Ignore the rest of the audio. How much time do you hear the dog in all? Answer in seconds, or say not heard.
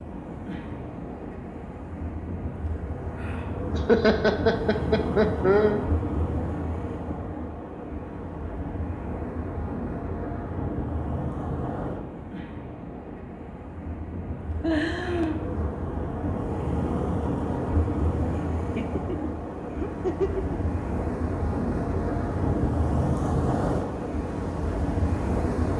not heard.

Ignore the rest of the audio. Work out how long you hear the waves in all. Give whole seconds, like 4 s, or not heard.
26 s.